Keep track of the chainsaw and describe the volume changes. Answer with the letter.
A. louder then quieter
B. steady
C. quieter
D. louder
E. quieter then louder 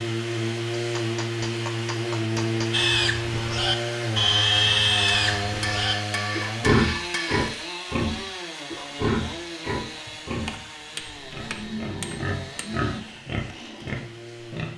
C.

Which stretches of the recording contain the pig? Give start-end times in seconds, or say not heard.
2.7-14.7.